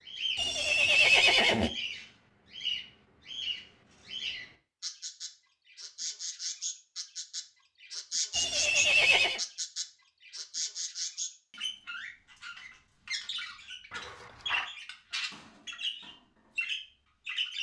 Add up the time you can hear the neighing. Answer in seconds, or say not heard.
3 s.